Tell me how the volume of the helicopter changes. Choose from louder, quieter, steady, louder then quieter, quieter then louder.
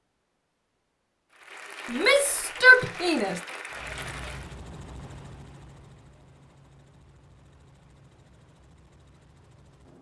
quieter.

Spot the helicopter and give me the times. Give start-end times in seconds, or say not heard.
3.7-9.9.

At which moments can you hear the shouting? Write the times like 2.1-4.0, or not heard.
1.9-3.4.